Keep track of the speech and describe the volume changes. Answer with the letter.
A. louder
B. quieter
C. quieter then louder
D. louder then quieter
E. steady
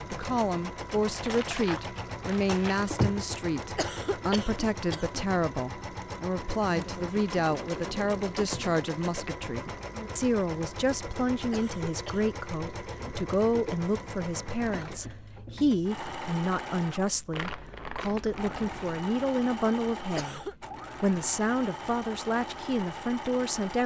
E.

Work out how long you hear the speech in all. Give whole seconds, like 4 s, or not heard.
24 s.